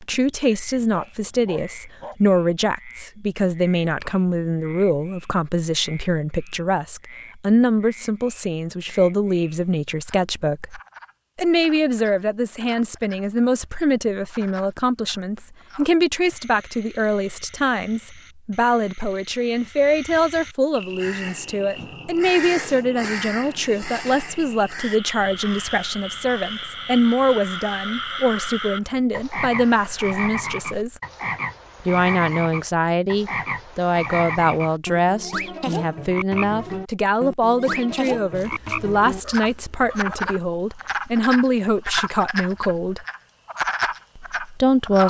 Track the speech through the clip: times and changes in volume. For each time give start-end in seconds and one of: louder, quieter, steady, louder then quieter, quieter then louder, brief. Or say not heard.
0.0-31.0 steady
31.8-43.0 steady
44.1-45.0 brief.